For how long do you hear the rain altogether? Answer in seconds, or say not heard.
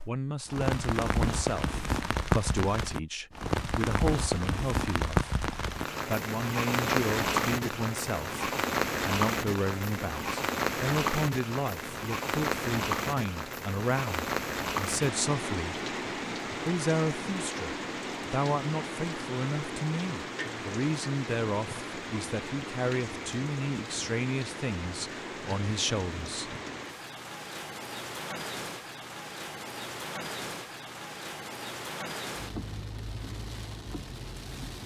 35 s.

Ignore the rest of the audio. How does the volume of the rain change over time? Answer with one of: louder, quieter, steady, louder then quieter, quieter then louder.
quieter.